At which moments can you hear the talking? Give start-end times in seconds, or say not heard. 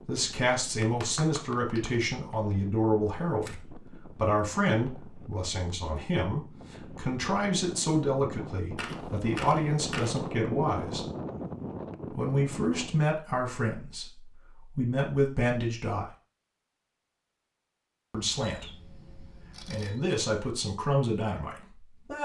0.0-11.1, 12.1-16.1, 18.1-22.2.